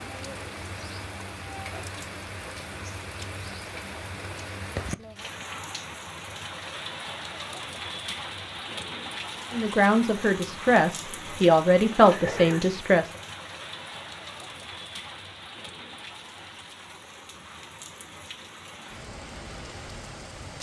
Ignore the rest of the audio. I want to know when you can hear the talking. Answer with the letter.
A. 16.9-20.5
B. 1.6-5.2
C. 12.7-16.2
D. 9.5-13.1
D.